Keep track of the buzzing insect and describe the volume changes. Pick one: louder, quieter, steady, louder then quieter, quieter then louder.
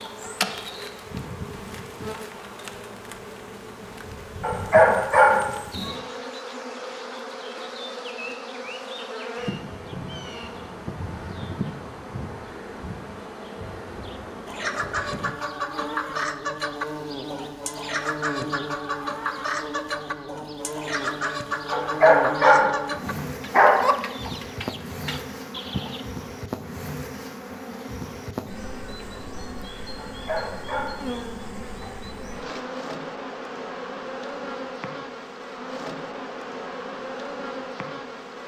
steady.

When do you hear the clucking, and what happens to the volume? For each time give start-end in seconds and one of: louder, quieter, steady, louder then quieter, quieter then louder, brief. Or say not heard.
14.4-26.1 steady.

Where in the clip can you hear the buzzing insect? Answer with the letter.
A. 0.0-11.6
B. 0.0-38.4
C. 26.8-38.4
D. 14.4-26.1
B.